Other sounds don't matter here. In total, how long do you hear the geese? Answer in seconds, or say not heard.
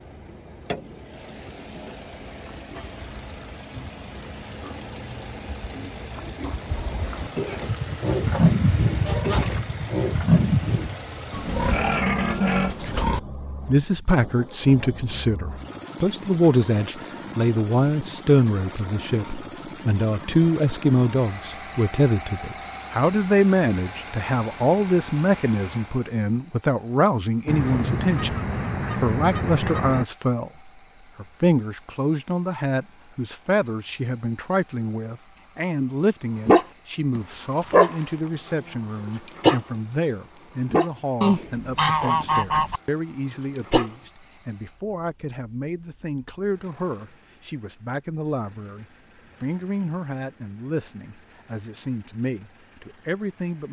6 s.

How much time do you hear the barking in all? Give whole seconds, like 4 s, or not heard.
6 s.